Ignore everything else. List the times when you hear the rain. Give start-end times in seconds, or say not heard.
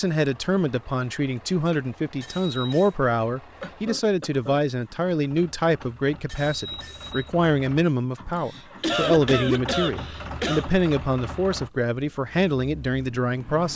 not heard.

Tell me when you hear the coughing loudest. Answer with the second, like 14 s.
9 s.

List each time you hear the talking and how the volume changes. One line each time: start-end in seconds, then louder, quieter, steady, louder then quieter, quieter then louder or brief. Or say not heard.
0.0-13.7 steady.